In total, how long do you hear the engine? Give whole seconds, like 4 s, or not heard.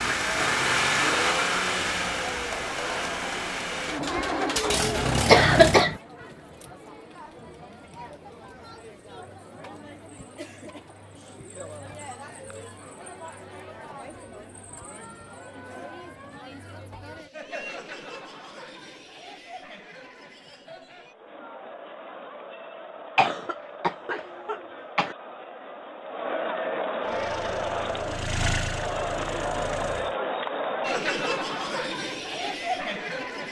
9 s.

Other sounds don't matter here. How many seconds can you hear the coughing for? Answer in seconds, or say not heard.
3 s.